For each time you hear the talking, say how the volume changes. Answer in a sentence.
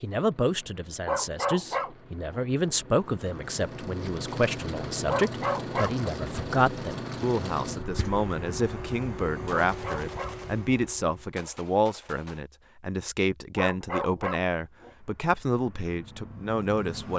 You can hear the talking from 0.0 to 17.1 s, at a steady volume.